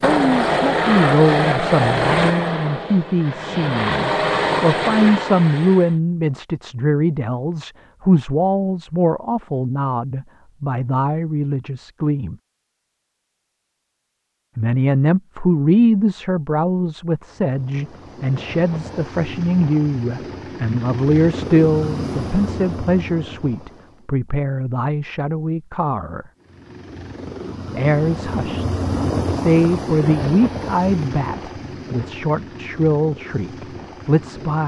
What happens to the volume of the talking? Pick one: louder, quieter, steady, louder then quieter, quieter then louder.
steady.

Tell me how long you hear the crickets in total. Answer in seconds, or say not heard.
not heard.